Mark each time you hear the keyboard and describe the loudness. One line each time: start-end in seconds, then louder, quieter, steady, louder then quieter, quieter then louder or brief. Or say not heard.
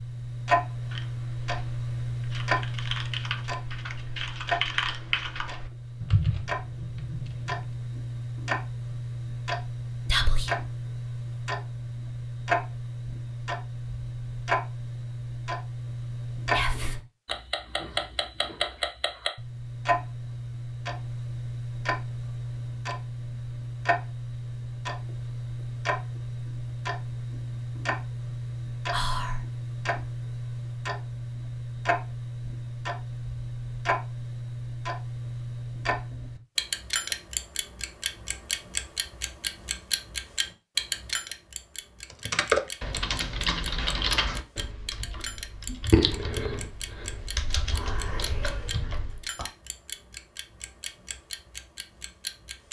0.7-7.7 louder
42.1-49.2 quieter.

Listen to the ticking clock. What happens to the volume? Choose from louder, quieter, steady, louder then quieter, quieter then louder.
quieter.